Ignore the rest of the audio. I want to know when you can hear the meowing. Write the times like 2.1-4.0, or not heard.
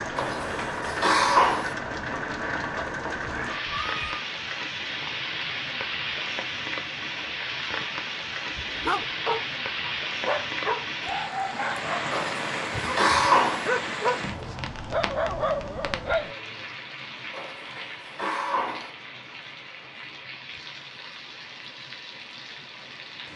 3.2-4.2.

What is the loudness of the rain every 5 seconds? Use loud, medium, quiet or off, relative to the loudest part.
loud, loud, loud, medium, medium.